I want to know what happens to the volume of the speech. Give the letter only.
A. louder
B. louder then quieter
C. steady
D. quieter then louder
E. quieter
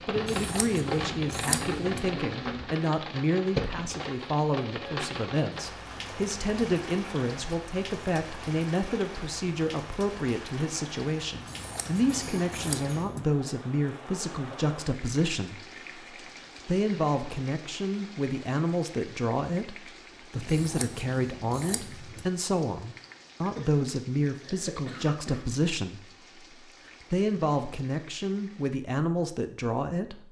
C.